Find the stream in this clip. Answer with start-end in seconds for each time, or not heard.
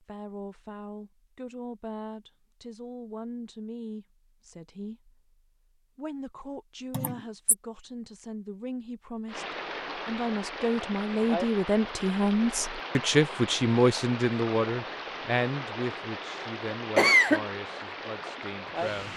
9.2-19.1.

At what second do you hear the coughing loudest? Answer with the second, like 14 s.
17 s.